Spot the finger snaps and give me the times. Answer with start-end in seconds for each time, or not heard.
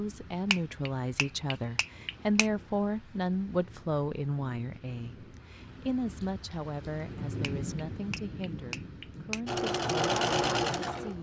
0.5-2.5, 7.4-9.4.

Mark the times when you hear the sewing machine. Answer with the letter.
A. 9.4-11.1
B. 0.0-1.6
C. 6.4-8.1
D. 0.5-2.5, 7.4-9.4
A.